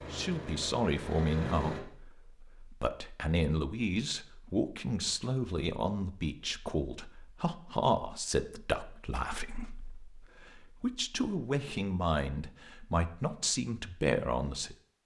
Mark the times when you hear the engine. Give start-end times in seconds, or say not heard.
0.0-1.8.